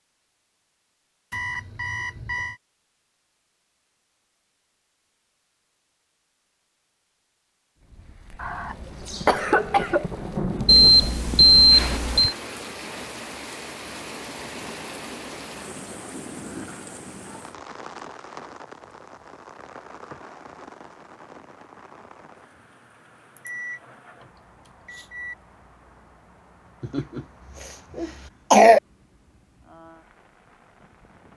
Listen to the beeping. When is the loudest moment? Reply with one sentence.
The volume of the beeping peaks at 12 seconds.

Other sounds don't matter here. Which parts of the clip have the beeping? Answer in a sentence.
The beeping can be heard from 1.3 to 2.6 s, from 10.7 to 12.3 s, from 23.4 to 23.8 s and from 24.9 to 25.4 s.